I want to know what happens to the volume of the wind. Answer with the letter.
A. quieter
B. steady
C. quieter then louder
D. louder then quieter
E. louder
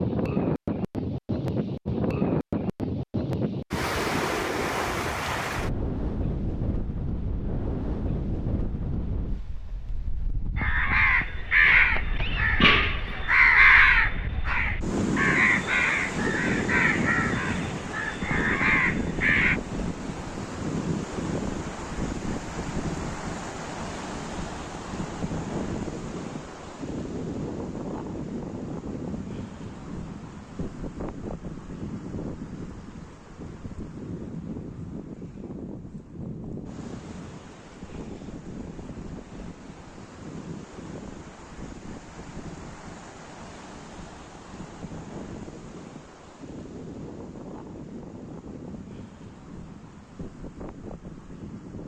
A.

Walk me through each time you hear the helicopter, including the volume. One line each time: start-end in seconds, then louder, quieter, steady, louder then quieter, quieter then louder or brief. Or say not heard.
not heard.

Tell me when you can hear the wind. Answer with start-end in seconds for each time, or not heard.
0.0-51.8.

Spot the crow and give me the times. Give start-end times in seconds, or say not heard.
10.6-19.6.